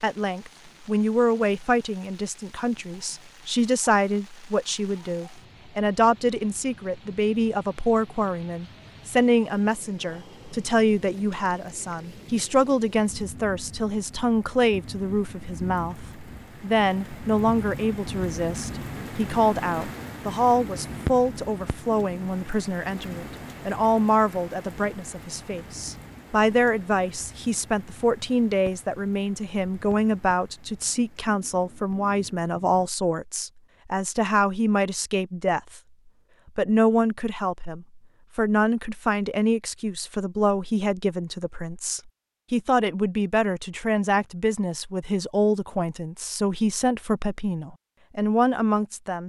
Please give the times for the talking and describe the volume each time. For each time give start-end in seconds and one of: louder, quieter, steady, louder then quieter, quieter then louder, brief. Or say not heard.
0.0-35.8 steady
36.5-49.2 steady.